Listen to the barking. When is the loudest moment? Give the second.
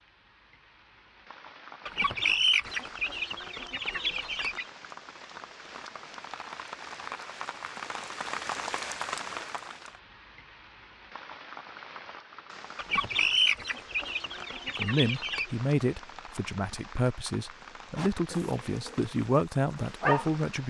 20 s.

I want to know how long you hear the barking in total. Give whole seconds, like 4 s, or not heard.
3 s.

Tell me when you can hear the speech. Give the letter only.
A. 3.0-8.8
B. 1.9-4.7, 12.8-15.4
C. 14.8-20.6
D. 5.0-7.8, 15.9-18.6
C.